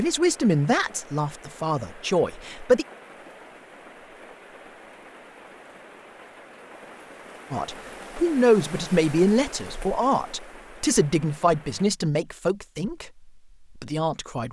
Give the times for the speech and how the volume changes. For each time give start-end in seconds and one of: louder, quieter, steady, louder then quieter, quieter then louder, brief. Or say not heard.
0.0-2.9 brief
7.5-14.4 quieter.